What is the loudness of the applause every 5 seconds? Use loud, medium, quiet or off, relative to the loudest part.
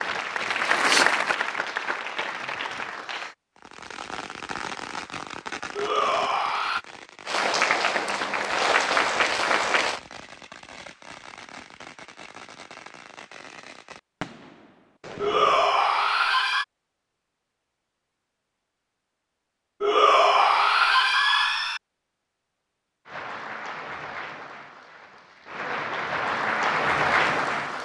loud, loud, off, off, quiet, loud.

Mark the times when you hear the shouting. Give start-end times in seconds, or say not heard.
5.8-6.8, 15.2-16.6, 19.8-21.8.